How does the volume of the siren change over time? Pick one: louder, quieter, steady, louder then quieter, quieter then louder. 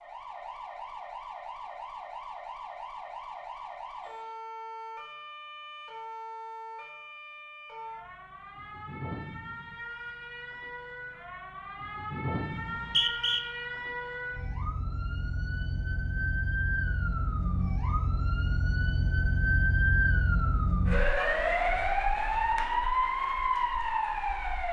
louder.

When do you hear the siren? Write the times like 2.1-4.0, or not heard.
0.0-24.6.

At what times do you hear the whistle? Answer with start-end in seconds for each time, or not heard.
12.6-13.4.